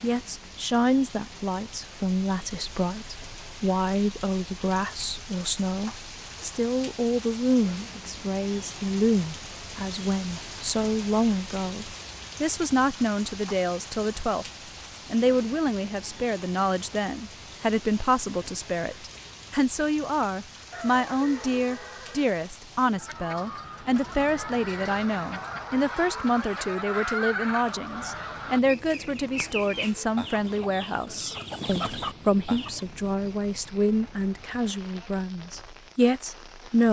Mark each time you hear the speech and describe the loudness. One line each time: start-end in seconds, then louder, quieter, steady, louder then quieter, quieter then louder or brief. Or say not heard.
0.0-14.4 steady
15.1-36.8 steady.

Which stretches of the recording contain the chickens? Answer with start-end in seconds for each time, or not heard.
22.9-32.9.